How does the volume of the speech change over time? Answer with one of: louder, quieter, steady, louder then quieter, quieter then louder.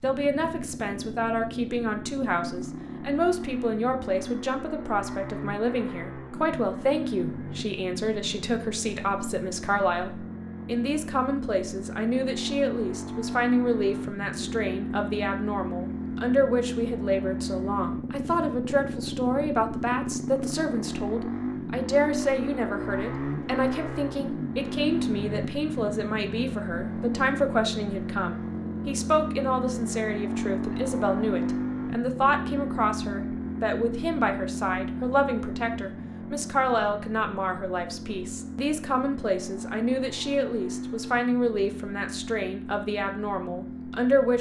steady.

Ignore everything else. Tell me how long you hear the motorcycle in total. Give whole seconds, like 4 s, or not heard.
44 s.